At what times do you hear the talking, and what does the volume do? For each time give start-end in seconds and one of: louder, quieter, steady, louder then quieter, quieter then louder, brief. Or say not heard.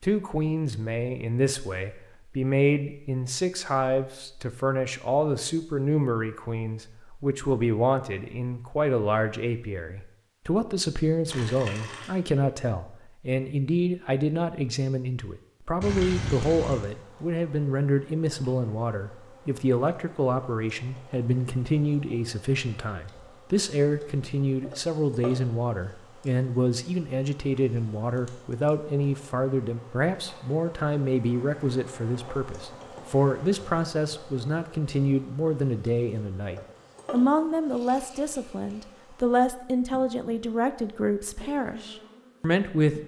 0.0-43.0 steady.